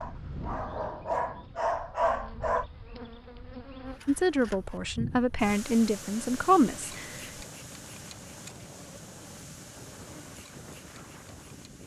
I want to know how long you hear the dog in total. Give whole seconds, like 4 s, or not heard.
3 s.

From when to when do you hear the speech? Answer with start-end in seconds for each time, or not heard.
4.0-7.2.